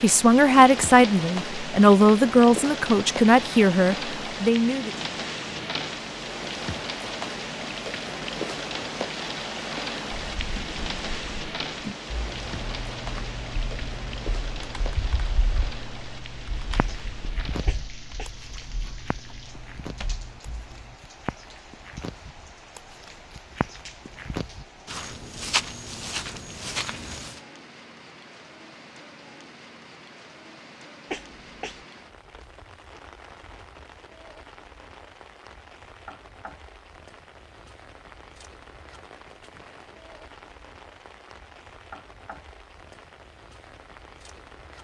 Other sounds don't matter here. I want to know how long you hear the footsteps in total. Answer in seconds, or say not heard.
11 s.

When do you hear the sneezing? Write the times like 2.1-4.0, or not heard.
17.6-18.4, 31.1-31.9.